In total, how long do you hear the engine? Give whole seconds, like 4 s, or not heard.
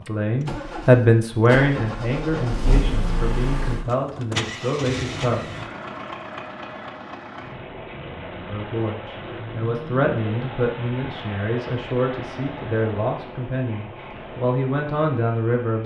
16 s.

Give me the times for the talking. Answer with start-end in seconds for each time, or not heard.
0.0-5.5, 8.4-15.8.